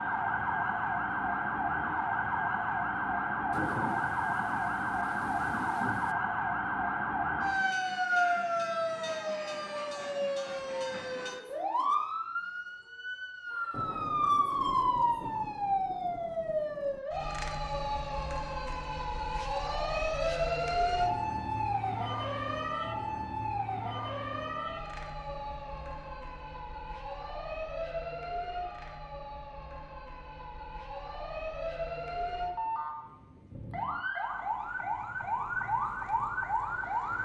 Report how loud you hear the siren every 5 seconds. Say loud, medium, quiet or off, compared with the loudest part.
loud, loud, loud, loud, loud, medium, medium, loud.